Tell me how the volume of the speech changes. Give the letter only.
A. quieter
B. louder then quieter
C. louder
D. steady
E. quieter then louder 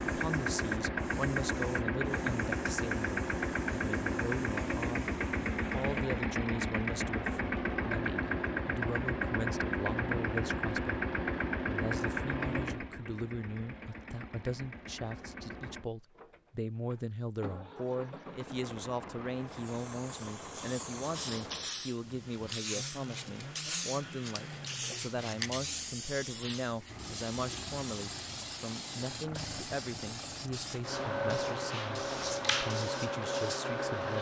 D.